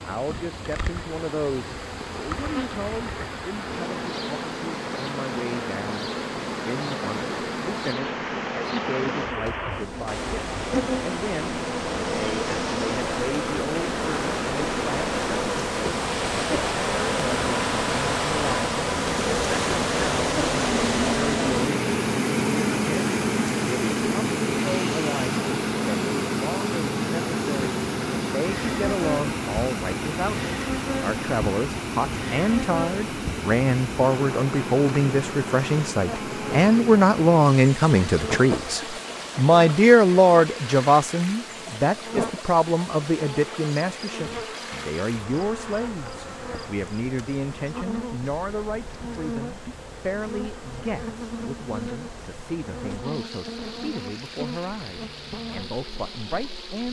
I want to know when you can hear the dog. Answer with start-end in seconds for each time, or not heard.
not heard.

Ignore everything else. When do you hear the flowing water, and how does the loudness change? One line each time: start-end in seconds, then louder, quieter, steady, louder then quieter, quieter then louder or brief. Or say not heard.
0.0-56.8 louder then quieter.